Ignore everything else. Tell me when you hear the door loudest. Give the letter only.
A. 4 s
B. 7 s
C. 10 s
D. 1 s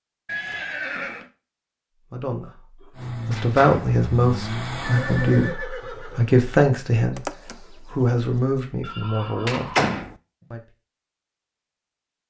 C.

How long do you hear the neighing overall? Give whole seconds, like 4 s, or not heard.
4 s.